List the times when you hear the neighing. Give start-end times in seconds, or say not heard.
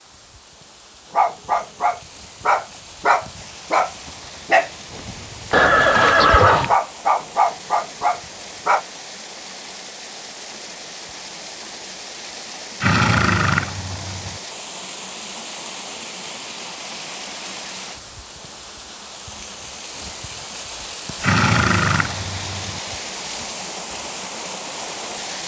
5.5-6.8, 12.8-14.4, 21.2-22.8.